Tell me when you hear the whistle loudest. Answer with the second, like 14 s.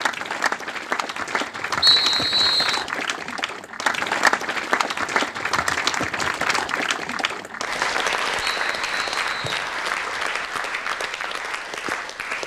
2 s.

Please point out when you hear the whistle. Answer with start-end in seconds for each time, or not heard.
1.8-2.9, 8.4-9.7.